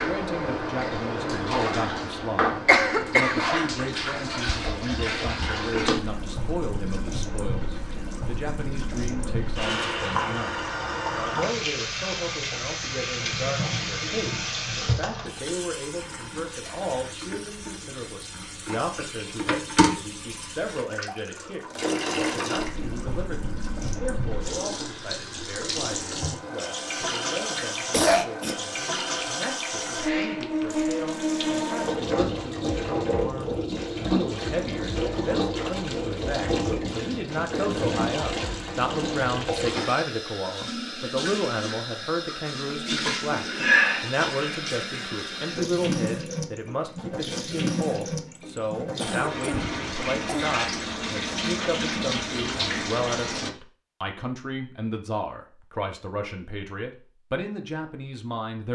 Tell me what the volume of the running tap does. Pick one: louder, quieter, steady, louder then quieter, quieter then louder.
steady.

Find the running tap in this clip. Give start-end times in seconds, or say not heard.
0.0-53.5.